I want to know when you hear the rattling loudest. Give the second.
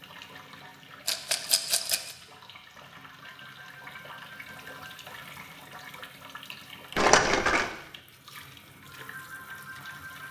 7 s.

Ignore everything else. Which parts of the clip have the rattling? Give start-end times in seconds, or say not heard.
1.1-2.1, 7.0-7.7.